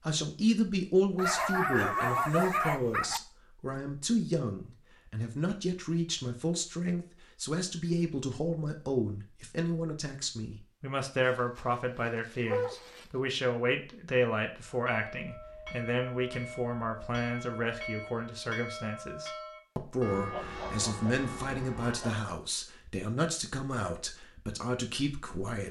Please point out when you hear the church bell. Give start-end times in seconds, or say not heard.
14.8-22.1.